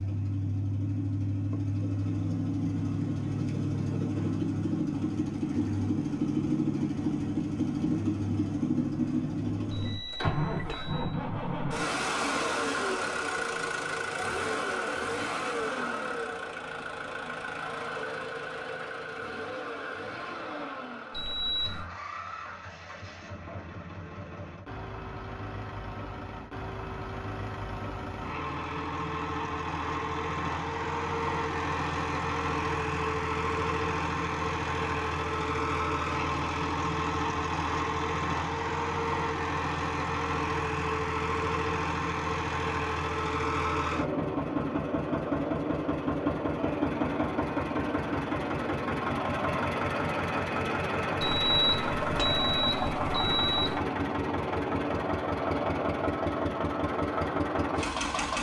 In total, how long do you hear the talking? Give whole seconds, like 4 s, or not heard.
not heard.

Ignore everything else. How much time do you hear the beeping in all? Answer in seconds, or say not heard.
5 s.